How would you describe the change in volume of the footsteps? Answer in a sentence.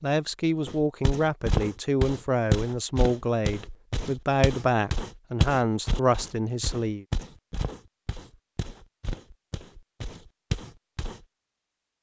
The loudness of the footsteps goes down.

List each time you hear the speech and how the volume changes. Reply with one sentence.
The speech can be heard from 0.0 to 7.0 s, at a steady volume.